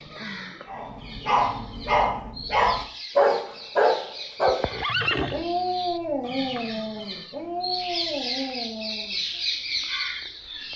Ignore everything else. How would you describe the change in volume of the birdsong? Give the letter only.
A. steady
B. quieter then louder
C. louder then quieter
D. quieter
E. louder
E.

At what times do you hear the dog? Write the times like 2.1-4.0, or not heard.
0.7-9.4.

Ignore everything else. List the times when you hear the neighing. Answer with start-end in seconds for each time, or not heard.
4.5-5.5.